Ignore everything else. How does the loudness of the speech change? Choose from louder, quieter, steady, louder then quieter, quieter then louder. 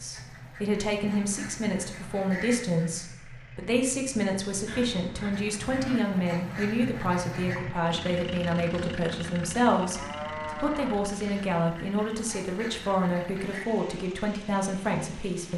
steady.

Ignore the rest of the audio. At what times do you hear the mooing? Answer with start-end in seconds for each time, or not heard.
4.7-6.0, 9.9-11.4.